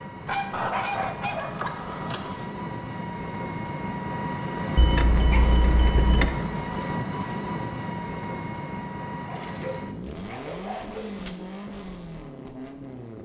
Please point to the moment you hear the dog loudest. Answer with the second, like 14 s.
1 s.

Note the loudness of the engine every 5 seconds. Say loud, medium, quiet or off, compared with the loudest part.
loud, loud, medium.